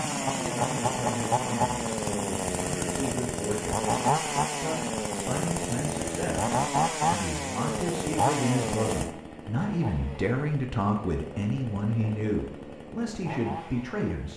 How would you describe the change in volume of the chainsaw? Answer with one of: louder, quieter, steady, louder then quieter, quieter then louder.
quieter.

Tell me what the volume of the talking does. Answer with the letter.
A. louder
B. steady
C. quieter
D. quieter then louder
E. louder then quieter
A.